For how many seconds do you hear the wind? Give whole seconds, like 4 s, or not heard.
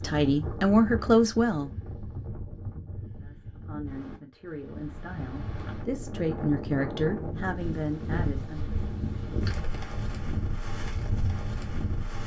12 s.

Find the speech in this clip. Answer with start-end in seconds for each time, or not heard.
0.0-1.7, 3.2-8.9.